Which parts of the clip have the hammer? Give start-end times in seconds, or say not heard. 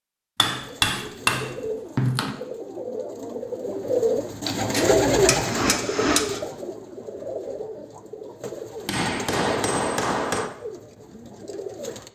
0.3-2.4, 4.5-6.4, 8.8-10.5.